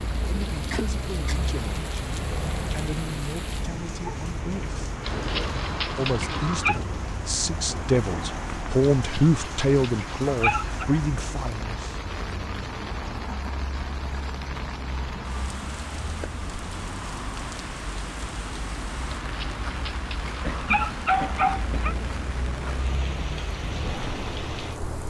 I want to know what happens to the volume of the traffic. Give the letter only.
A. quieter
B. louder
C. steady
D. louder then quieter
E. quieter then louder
C.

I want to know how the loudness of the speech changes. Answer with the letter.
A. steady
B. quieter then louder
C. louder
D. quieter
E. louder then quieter
E.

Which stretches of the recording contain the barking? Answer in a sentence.
You can hear the barking from 5.0 to 6.8 s, from 8.9 to 10.8 s and from 19.1 to 21.9 s.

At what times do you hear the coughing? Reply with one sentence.
The coughing can be heard from 0.7 to 1.4 s and from 20.4 to 21.8 s.